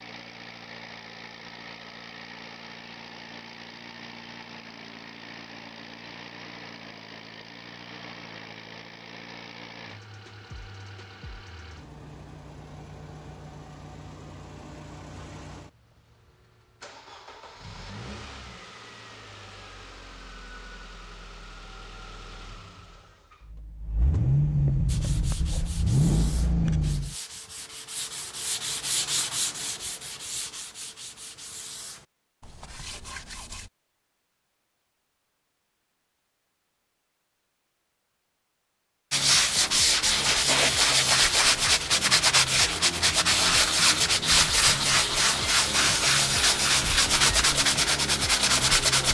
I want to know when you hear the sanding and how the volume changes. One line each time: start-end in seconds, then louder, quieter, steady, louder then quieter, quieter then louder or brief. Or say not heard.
24.9-33.7 louder then quieter
39.1-49.0 steady.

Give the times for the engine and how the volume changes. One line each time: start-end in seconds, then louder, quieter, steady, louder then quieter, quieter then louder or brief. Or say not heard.
0.0-27.1 louder.